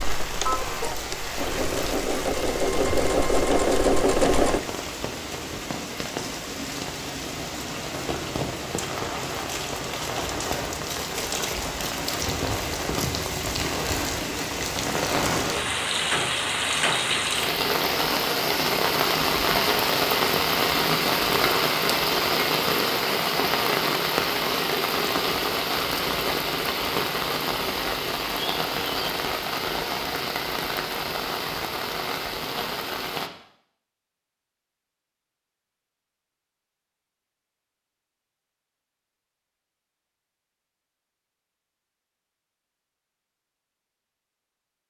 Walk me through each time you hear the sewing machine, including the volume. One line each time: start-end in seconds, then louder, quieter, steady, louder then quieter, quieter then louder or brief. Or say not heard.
0.2-4.6 louder.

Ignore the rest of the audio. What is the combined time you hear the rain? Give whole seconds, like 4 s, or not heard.
33 s.